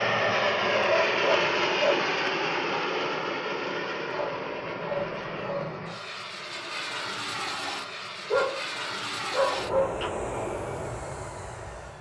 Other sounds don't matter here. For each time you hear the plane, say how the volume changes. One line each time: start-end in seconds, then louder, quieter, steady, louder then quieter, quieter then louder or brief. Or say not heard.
0.0-11.9 quieter.